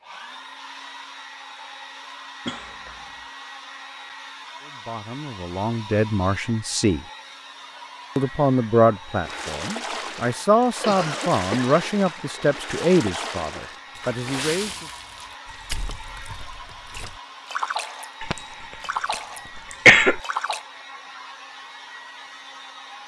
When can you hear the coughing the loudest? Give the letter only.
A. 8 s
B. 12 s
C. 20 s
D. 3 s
C.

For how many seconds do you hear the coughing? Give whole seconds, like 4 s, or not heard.
4 s.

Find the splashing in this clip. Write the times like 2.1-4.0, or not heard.
9.2-20.6.